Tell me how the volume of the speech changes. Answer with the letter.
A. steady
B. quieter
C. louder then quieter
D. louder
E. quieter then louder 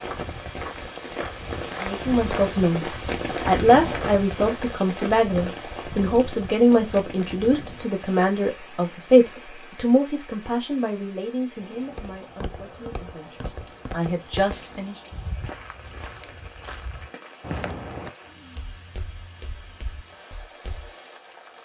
B.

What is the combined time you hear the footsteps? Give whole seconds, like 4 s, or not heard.
14 s.